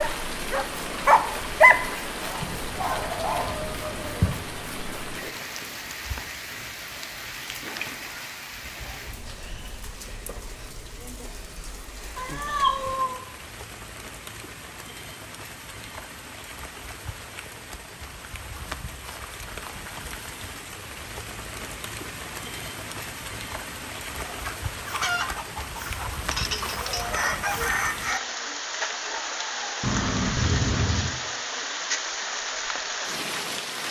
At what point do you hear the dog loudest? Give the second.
2 s.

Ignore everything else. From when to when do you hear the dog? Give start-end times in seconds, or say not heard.
0.0-3.6.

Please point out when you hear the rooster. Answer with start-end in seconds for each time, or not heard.
2.4-4.3, 24.1-28.2.